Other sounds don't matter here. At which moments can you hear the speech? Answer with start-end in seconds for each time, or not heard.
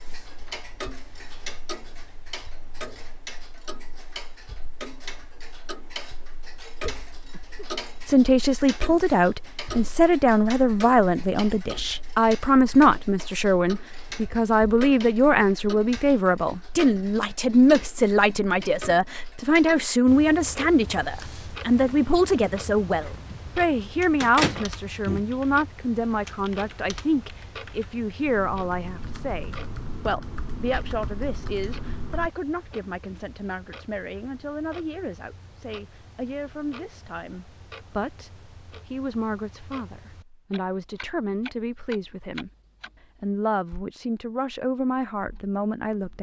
8.1-42.5, 43.2-46.1.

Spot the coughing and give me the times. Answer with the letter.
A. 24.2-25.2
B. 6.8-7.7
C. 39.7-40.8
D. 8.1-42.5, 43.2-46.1
B.